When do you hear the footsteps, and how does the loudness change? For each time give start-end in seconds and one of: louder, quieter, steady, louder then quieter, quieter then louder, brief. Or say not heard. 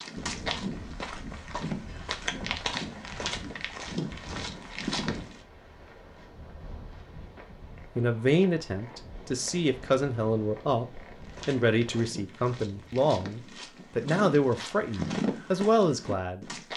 0.0-5.4 steady
11.2-16.7 louder then quieter.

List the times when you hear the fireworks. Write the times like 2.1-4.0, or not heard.
not heard.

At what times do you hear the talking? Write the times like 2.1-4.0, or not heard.
8.0-16.4.